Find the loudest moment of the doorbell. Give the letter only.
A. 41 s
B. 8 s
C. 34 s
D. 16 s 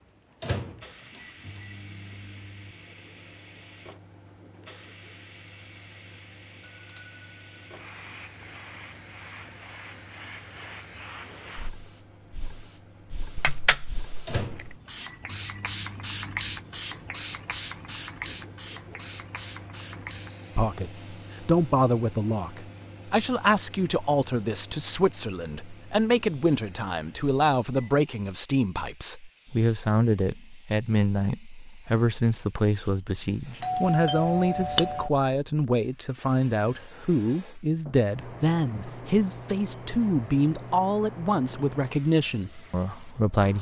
C.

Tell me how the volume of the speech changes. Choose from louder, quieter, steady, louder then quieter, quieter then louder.
steady.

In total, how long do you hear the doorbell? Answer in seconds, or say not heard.
3 s.